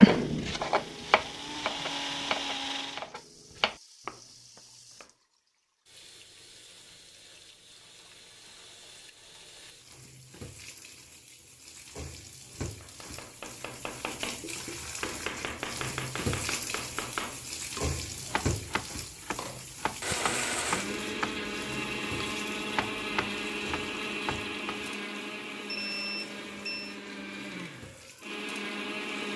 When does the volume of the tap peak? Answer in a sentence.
The loudest moment of the tap is at 18 seconds.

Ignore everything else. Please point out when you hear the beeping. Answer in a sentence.
The beeping can be heard from 25.6 to 26.9 s.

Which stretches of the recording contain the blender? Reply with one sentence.
You can hear the blender from 0.1 to 3.1 s and from 19.4 to 29.3 s.